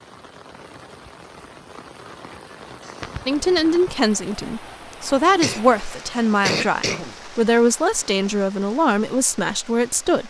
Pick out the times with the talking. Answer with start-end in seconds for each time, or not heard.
3.2-10.2.